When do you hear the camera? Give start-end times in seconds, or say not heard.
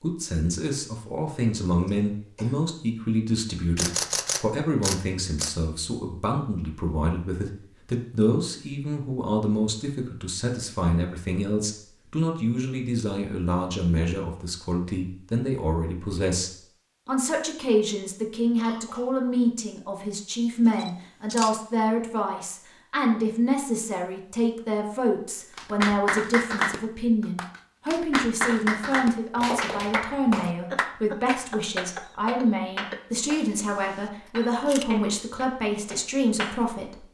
3.8-5.5, 20.8-21.6, 33.3-34.9.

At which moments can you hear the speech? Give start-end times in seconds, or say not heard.
0.0-37.0.